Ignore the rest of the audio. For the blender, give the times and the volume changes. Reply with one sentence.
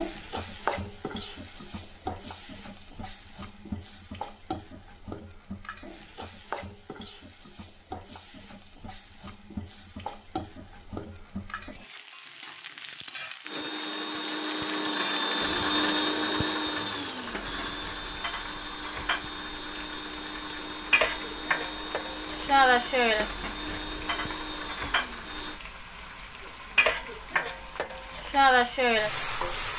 You can hear the blender from 13.4 to 25.6 s, getting quieter.